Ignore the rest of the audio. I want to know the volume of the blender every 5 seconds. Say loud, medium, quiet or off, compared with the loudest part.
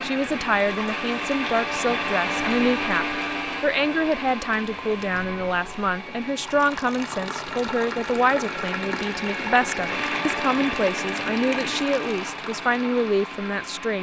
loud, medium, loud.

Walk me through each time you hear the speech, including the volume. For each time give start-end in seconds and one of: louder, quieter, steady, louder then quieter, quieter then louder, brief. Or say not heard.
0.0-13.9 steady.